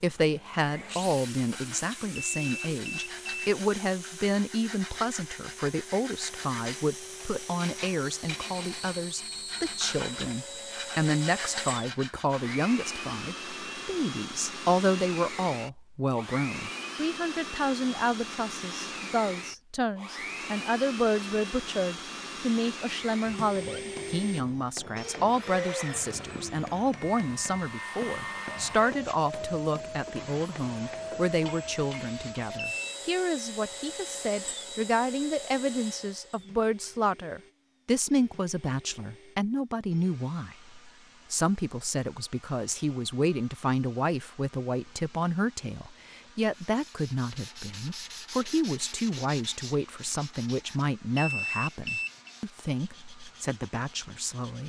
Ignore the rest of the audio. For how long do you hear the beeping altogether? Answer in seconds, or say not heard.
3 s.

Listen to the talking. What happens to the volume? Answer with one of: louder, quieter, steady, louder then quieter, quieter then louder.
steady.